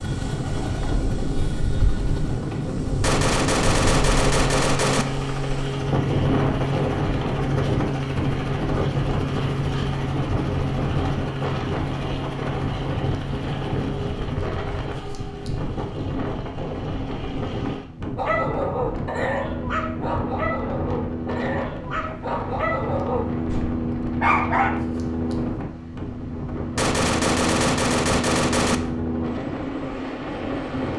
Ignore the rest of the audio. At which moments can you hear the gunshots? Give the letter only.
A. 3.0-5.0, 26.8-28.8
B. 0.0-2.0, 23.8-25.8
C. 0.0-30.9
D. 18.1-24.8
A.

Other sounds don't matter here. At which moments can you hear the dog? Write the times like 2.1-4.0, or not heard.
18.1-24.8.